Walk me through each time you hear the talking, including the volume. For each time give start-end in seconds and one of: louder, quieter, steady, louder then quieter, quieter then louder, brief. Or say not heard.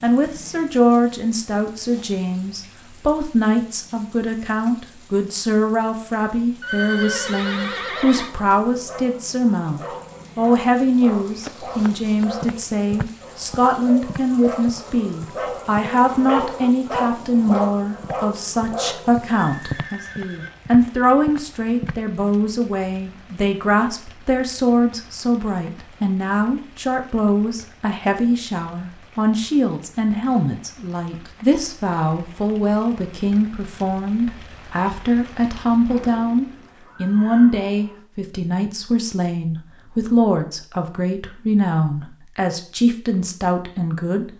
0.0-44.3 steady.